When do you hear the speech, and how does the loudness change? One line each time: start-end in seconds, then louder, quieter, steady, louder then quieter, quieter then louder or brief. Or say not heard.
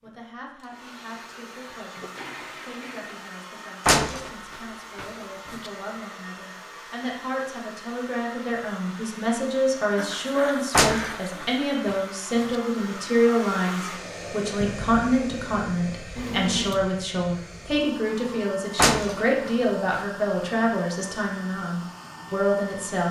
0.0-23.0 louder.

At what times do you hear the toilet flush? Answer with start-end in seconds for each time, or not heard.
1.9-3.3, 9.9-11.8, 16.1-16.9.